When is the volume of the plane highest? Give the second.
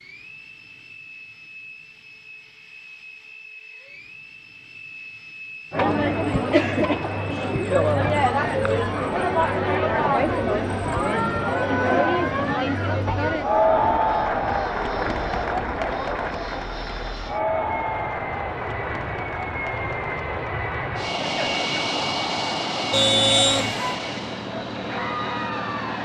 22 s.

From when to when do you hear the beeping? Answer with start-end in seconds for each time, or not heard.
22.9-24.0.